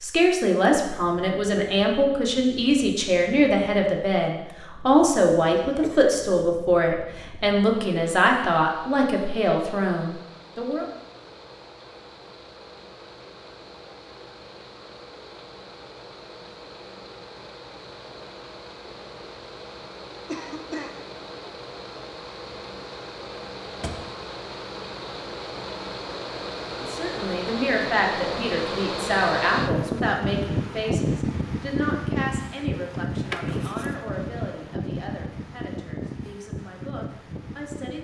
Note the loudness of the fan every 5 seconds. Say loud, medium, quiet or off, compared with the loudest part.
quiet, quiet, quiet, quiet, medium, loud, loud, medium.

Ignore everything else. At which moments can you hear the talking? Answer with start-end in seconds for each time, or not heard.
0.0-10.8, 26.8-37.9.